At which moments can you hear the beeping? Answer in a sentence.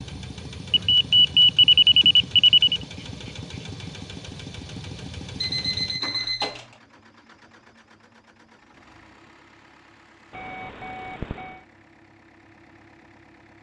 The beeping can be heard from 0.7 to 2.8 s, from 5.4 to 6.7 s and from 10.3 to 11.6 s.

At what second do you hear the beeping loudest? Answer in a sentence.
The volume of the beeping peaks at 2 seconds.